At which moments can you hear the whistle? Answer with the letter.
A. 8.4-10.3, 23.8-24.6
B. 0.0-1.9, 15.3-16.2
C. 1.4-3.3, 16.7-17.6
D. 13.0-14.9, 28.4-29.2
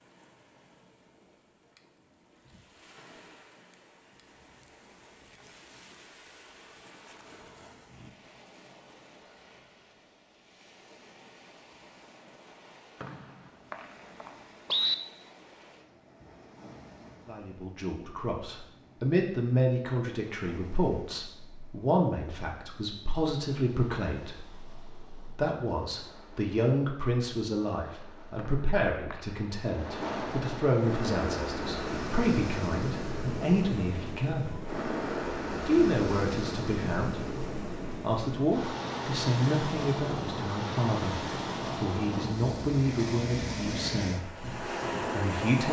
D.